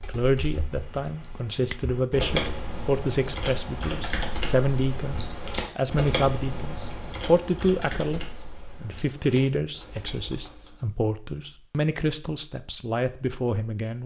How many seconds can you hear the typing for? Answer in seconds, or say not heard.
11 s.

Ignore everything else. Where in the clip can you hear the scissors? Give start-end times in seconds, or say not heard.
1.6-2.5.